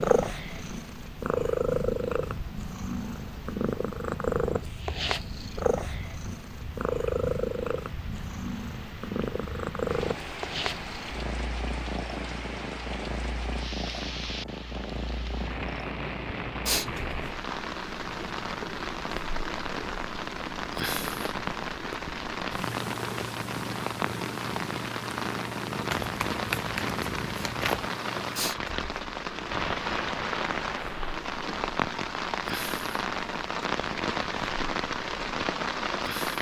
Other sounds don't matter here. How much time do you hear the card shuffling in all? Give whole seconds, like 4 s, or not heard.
2 s.